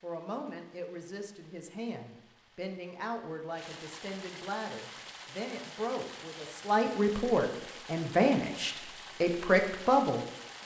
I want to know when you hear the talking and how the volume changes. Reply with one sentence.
You can hear the talking from 0.0 to 10.6 s, getting louder.